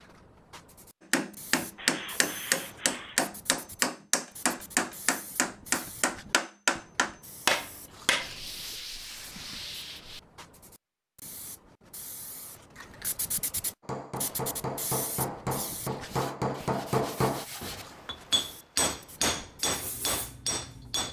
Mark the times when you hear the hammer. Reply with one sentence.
You can hear the hammer from 1.1 to 8.3 s and from 13.8 to 21.0 s.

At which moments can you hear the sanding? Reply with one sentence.
The sanding can be heard from 1.6 to 3.2 s, from 8.2 to 10.2 s and from 15.8 to 17.9 s.